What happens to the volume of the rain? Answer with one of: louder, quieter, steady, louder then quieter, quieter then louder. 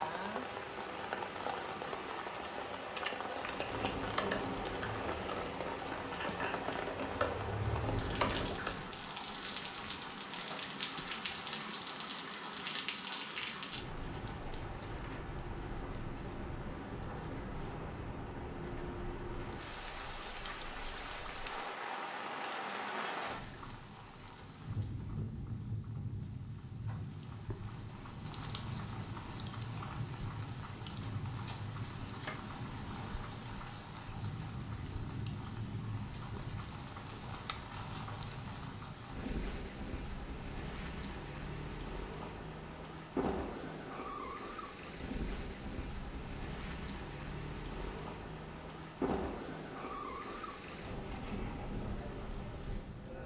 steady.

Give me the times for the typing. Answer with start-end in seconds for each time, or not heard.
3.4-8.8.